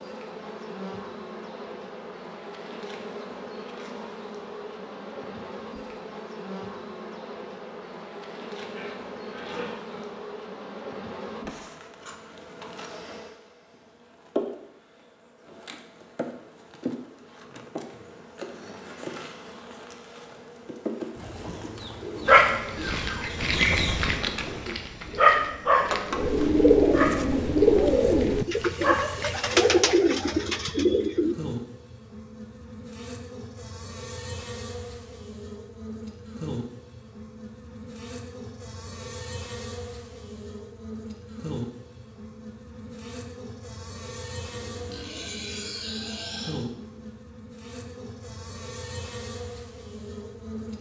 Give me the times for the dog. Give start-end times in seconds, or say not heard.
22.2-29.5.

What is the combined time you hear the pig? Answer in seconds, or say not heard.
4 s.